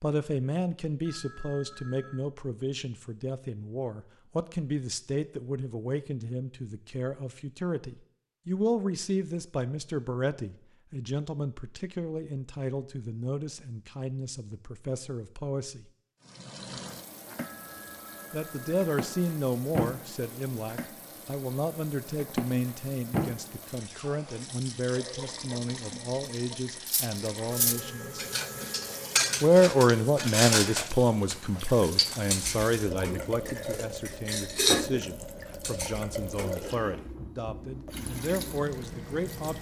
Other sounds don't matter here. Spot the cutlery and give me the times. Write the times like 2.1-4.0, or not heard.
26.9-36.6.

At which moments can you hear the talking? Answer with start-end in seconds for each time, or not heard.
0.0-15.8, 18.3-28.2, 29.4-39.5.